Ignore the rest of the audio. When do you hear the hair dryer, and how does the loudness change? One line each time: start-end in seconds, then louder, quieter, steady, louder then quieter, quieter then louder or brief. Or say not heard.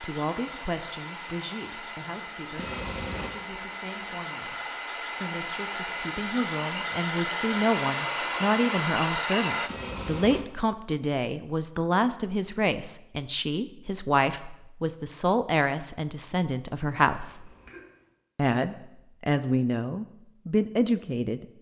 0.0-9.7 louder.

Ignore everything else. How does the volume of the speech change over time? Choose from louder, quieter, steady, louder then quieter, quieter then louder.
louder.